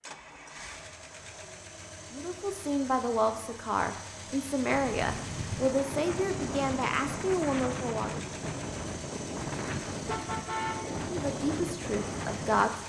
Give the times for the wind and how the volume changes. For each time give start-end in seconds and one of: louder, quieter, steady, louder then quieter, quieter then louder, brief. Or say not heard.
4.7-12.8 steady.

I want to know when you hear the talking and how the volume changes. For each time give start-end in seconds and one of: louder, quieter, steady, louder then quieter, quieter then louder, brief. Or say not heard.
2.1-8.2 steady
11.1-12.7 brief.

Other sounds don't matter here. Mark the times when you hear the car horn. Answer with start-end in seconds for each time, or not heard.
10.1-10.8.